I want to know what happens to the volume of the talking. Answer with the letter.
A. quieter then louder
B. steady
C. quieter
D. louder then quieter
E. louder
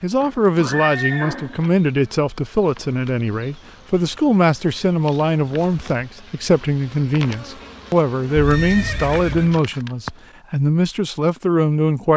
B.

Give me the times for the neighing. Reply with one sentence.
The neighing can be heard from 0.2 to 1.6 s and from 8.3 to 9.6 s.